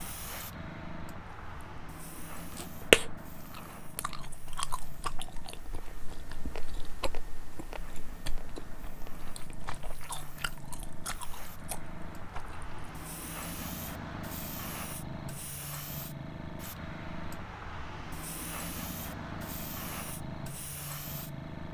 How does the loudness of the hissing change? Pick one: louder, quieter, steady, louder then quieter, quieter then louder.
quieter then louder.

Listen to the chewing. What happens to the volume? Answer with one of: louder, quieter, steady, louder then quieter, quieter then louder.
quieter.